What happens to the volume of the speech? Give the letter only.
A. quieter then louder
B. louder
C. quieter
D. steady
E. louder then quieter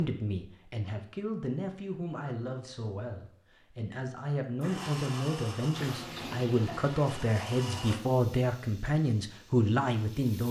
B.